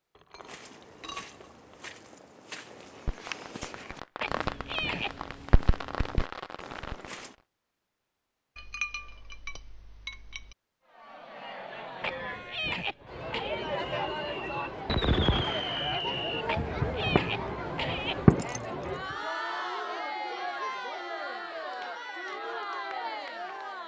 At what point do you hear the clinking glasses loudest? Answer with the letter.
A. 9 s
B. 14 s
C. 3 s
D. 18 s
A.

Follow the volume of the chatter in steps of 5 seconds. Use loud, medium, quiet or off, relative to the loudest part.
off, off, loud, loud, loud.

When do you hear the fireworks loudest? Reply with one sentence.
The loudest moment of the fireworks is at 18 seconds.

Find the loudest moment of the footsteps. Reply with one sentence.
The loudest moment of the footsteps is at 3 seconds.